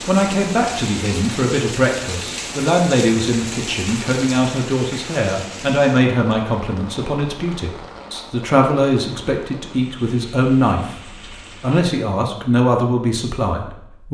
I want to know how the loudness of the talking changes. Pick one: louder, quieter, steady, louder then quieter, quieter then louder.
steady.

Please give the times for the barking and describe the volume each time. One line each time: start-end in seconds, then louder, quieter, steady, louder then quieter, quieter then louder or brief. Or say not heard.
not heard.